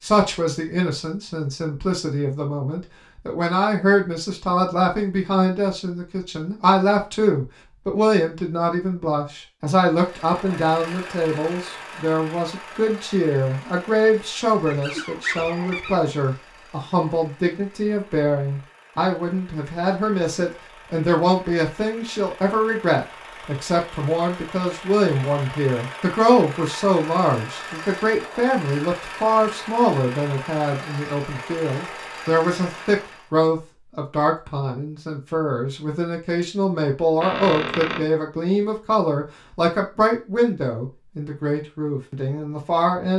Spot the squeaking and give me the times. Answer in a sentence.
You can hear the squeaking from 14.7 to 16.1 s and from 37.2 to 38.0 s.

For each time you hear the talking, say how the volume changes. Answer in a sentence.
You can hear the talking from 0.0 to 43.1 s, at a steady volume.